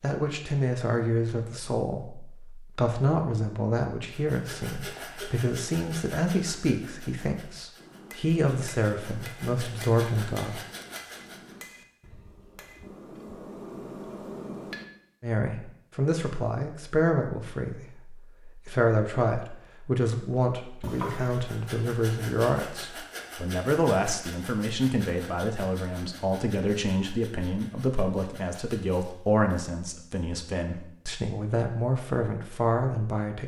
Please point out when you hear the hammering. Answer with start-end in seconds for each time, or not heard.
7.8-14.8.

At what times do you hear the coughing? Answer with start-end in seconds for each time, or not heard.
20.8-21.4.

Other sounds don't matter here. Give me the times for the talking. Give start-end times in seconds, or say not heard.
0.0-10.6, 15.2-33.4.